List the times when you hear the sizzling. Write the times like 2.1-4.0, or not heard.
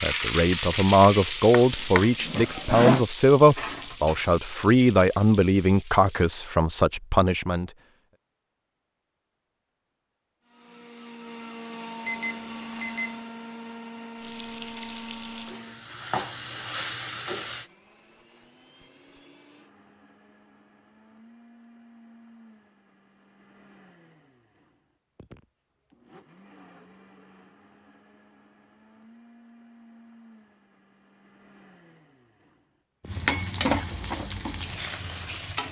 0.0-6.4, 14.2-17.6, 33.0-35.6.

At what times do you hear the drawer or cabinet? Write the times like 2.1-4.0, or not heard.
1.5-3.0.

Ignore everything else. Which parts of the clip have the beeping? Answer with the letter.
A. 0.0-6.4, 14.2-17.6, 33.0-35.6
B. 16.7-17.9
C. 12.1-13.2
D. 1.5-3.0
C.